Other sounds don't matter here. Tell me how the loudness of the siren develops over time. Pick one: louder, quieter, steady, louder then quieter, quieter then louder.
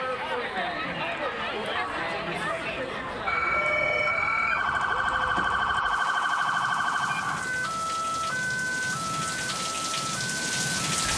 quieter.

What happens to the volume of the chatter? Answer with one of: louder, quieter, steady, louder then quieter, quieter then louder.
quieter.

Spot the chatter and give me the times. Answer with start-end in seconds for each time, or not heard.
0.0-6.3.